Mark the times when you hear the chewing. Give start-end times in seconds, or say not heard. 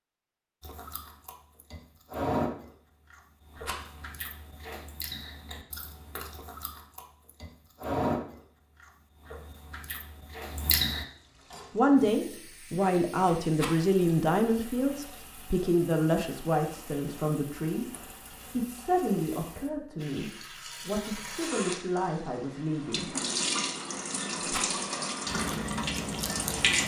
0.6-11.1, 25.2-26.8.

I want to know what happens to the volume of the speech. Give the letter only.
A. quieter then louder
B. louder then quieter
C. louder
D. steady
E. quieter
E.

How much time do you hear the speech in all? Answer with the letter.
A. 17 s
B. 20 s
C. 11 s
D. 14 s
C.